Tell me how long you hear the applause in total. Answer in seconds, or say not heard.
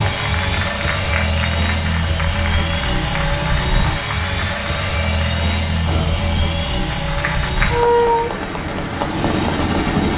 10 s.